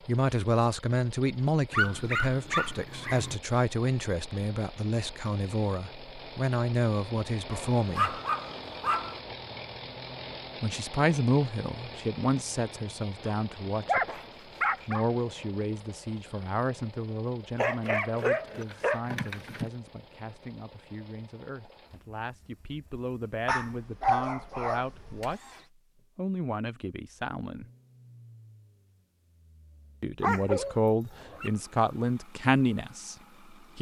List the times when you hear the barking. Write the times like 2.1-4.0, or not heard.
1.7-3.4, 7.5-9.2, 13.2-15.1, 17.6-19.7, 23.4-25.4, 30.2-31.5.